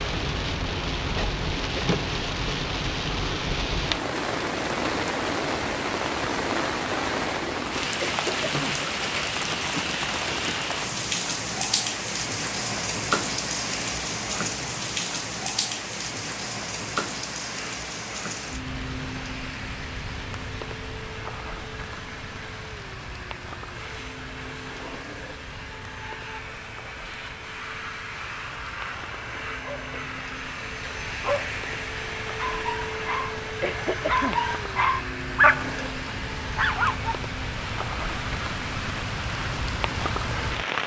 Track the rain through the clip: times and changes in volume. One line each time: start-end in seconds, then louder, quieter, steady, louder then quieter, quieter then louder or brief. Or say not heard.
0.0-40.8 quieter then louder.